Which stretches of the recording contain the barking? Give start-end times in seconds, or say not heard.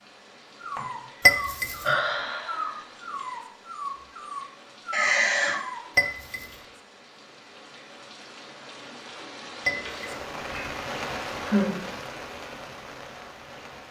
0.6-6.1.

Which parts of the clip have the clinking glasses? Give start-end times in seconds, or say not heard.
1.2-1.8, 6.0-6.5, 9.7-10.2.